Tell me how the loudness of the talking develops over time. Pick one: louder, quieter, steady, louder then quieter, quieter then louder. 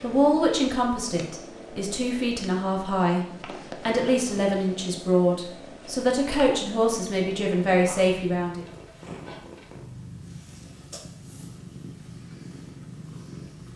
steady.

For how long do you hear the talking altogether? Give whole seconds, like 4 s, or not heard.
8 s.